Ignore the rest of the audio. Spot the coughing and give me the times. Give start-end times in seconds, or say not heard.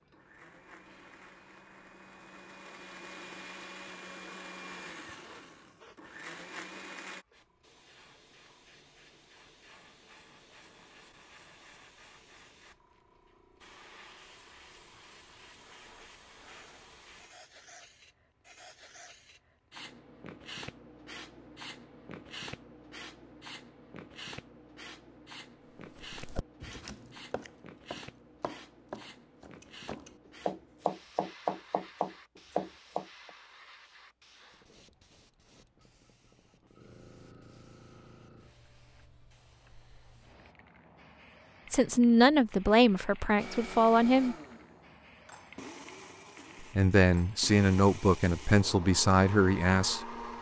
not heard.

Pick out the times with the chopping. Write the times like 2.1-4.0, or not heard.
25.9-33.3.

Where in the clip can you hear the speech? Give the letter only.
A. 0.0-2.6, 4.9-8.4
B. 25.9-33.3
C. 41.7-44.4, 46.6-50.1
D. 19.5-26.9
C.